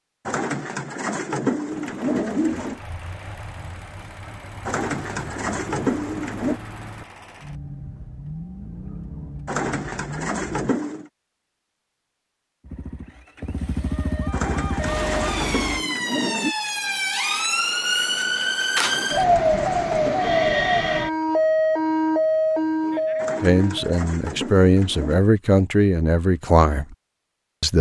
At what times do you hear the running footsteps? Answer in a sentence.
You can't hear the running footsteps here.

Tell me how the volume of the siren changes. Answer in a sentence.
The loudness of the siren goes up.